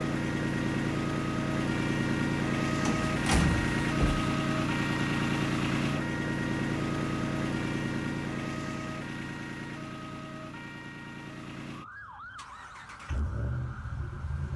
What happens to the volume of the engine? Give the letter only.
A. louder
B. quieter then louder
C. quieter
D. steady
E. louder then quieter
C.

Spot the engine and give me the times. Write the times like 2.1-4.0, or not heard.
0.0-14.5.